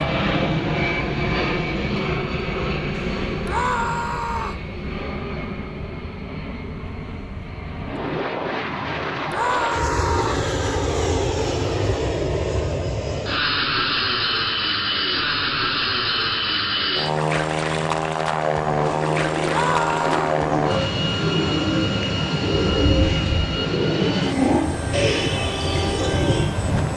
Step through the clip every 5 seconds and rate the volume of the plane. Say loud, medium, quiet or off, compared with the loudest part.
loud, medium, loud, loud, loud, loud.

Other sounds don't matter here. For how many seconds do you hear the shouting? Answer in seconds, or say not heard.
3 s.